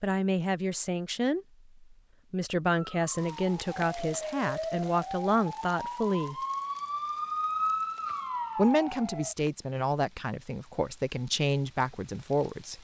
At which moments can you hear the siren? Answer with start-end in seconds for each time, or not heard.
3.0-9.3.